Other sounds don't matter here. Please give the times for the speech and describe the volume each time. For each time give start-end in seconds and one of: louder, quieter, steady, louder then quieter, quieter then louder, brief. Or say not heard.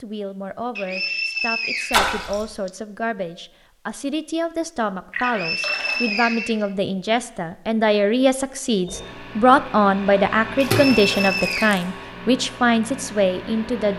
0.0-13.9 louder.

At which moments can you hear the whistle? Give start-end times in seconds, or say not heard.
0.8-2.7, 5.2-6.7, 10.8-11.8.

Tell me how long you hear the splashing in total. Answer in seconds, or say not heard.
3 s.